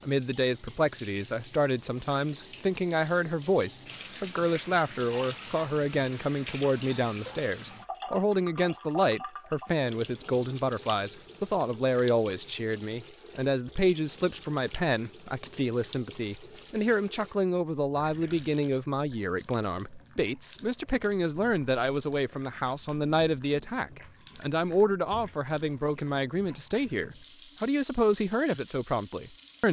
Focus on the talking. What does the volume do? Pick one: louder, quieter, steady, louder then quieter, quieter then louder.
steady.